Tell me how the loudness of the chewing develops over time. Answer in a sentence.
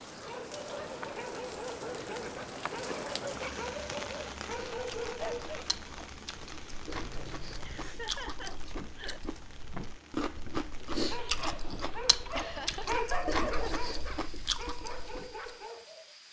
The volume of the chewing goes up.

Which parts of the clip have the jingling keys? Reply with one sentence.
You can hear the jingling keys from 6.9 to 8.0 s.